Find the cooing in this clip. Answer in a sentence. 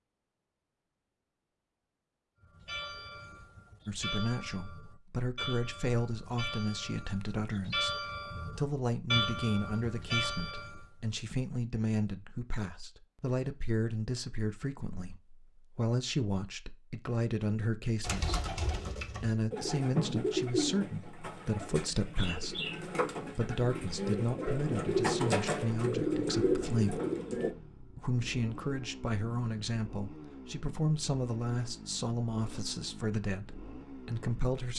The cooing can be heard from 18.0 to 27.5 s.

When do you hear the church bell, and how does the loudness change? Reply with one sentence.
The church bell can be heard from 2.5 to 10.8 s, getting louder.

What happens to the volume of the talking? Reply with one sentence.
The volume of the talking stays about the same.